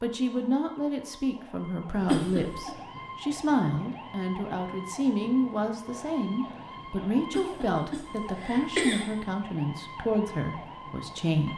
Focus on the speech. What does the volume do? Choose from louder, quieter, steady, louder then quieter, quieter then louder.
steady.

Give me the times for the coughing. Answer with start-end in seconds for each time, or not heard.
2.0-2.7, 7.3-9.1.